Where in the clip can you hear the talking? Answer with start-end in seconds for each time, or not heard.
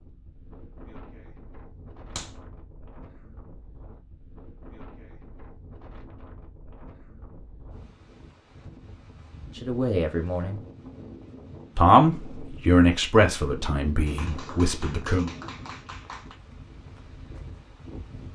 9.6-10.6, 11.8-15.3.